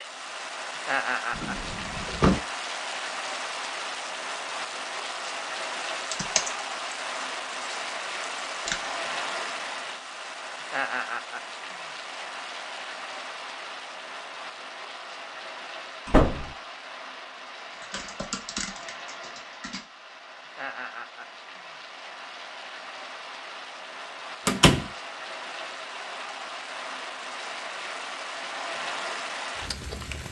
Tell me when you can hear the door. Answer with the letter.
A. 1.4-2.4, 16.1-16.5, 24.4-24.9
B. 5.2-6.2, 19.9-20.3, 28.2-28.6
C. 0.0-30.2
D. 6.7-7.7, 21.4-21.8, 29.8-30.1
A.